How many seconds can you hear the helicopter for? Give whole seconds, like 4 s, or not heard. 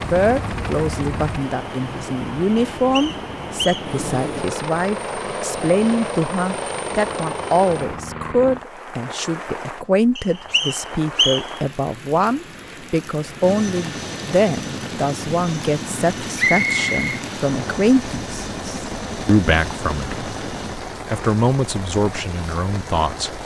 16 s.